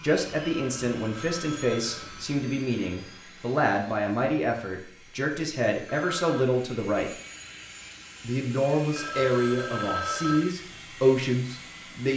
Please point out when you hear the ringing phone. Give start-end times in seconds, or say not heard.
0.4-2.2, 5.8-6.4, 8.9-10.6.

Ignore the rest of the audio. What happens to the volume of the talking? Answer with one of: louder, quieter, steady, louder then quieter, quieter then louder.
steady.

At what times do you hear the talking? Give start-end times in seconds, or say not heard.
0.0-7.1, 8.2-12.1.